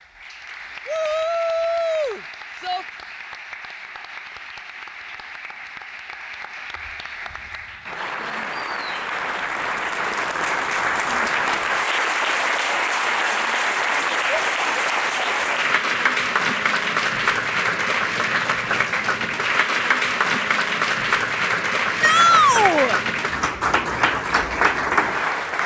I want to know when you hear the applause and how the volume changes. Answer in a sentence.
The applause can be heard from 0.0 to 25.6 s, getting louder.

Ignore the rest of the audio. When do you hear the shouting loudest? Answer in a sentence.
The volume of the shouting peaks at 22 seconds.